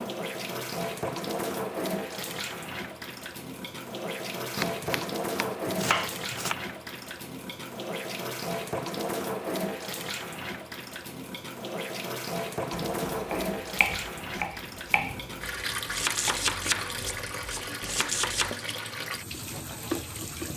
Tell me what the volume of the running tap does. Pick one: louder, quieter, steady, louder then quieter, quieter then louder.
steady.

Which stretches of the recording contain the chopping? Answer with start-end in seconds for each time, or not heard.
4.5-6.5, 12.7-18.6.